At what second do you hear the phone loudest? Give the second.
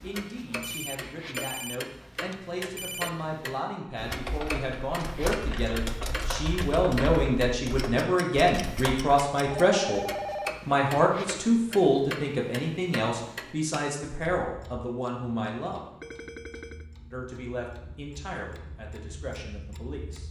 10 s.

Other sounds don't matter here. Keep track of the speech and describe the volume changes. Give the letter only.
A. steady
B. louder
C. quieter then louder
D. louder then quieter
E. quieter
D.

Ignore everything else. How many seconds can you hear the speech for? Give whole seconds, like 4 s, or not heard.
18 s.